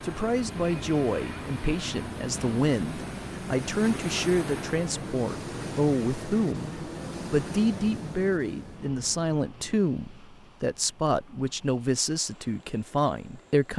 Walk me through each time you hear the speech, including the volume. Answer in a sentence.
You can hear the speech from 0.0 to 13.7 s, at a steady volume.